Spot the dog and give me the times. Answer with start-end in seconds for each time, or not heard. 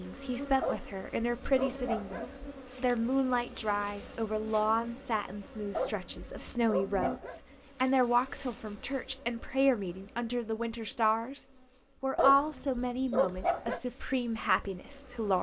0.6-2.5, 5.7-7.4, 12.2-13.8.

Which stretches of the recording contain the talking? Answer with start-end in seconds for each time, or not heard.
0.0-11.4, 12.0-15.3.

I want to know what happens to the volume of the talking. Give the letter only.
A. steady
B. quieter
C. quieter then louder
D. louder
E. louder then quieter
A.